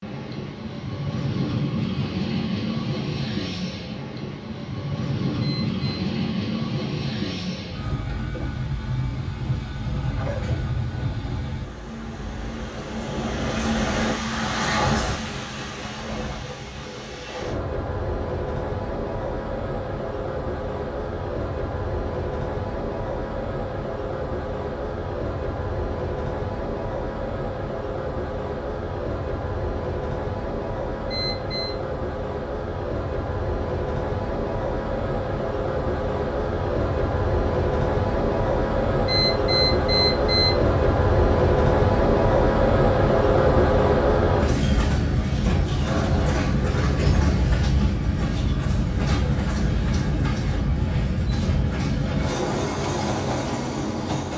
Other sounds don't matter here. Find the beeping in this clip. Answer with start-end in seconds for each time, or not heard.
5.4-6.0, 31.1-31.8, 39.0-40.5.